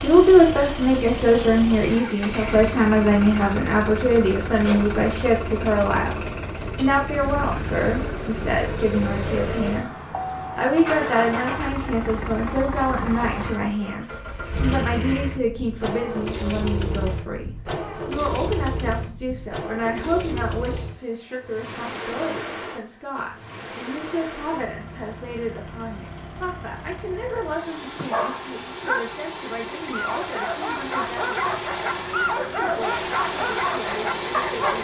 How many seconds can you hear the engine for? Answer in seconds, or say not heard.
35 s.